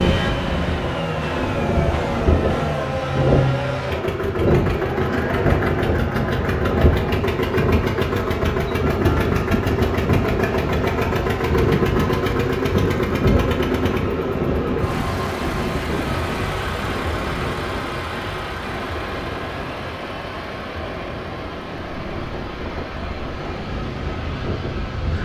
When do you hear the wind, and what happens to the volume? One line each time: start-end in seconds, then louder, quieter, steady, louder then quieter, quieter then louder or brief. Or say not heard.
0.0-25.2 quieter.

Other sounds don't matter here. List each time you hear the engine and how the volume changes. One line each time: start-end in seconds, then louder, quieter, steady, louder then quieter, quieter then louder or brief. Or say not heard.
0.0-25.2 quieter.